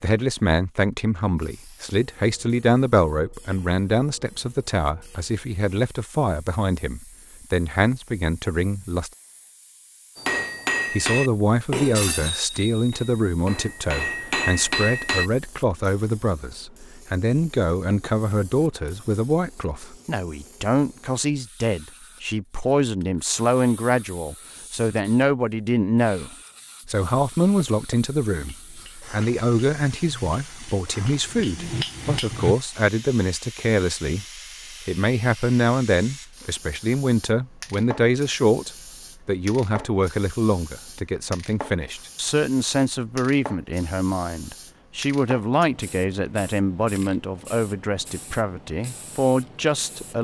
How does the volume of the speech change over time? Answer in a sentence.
The volume of the speech stays about the same.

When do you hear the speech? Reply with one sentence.
The speech can be heard from 0.0 to 9.1 s and from 10.9 to 50.1 s.